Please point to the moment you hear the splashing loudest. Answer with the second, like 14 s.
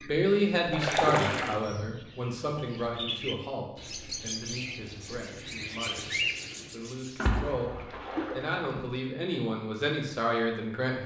1 s.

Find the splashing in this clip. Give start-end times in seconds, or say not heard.
0.7-1.6, 7.2-8.8.